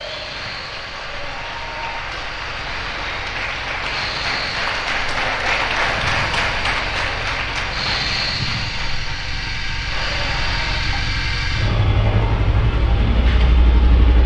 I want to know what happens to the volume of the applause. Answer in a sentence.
The loudness of the applause goes up, then down.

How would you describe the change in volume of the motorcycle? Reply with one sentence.
The loudness of the motorcycle goes up.